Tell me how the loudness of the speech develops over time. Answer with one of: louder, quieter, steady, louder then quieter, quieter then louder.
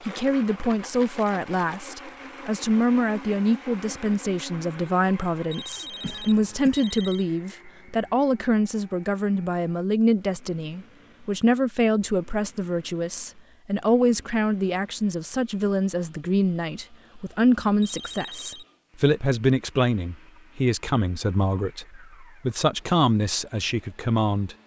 steady.